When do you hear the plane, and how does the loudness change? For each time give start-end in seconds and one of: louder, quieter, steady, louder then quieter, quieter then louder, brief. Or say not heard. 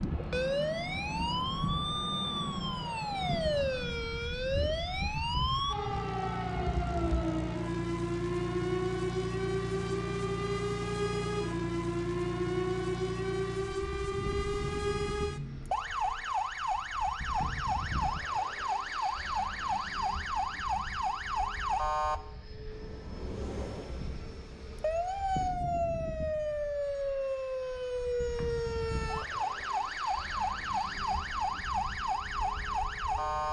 0.0-33.4 quieter.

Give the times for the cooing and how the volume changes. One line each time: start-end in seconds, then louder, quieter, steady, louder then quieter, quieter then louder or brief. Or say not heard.
not heard.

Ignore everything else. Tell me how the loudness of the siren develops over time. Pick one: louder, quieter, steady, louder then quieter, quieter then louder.
steady.